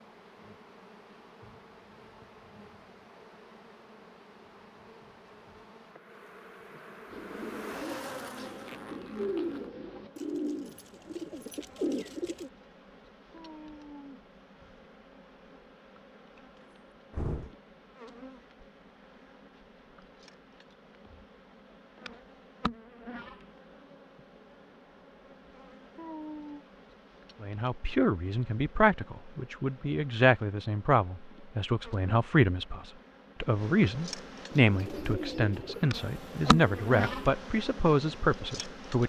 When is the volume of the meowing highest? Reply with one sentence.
The volume of the meowing peaks at 26 seconds.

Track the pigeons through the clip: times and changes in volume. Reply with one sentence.
The pigeons can be heard from 7.0 to 12.5 s, getting louder; and briefly from 34.5 to 37.4 s.